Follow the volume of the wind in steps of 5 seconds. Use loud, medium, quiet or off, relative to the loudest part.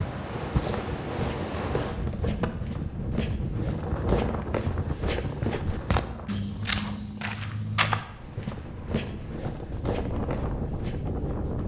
loud, medium, loud.